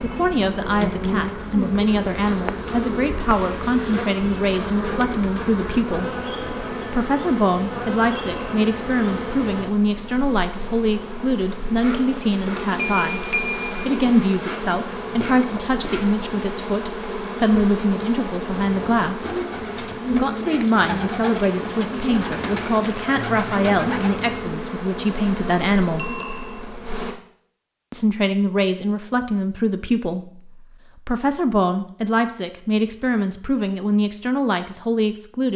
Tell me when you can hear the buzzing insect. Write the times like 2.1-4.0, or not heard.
0.0-27.1.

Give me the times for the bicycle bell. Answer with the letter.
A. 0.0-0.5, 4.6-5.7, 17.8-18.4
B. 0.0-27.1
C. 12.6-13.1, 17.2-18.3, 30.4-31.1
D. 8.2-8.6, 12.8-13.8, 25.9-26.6
D.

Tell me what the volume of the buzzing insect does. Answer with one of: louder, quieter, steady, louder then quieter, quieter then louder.
steady.